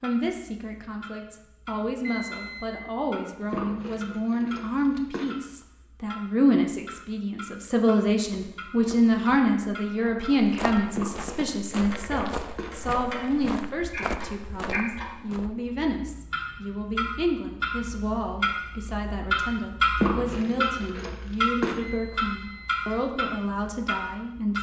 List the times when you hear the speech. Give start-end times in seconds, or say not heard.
0.0-24.5.